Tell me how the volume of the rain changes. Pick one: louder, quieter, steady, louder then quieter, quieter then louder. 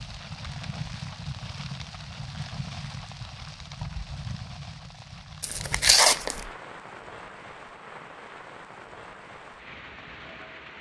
quieter.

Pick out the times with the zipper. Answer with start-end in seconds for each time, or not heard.
not heard.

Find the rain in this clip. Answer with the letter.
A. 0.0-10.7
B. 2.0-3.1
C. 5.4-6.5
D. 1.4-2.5
A.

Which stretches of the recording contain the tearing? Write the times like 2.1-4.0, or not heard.
5.4-6.5.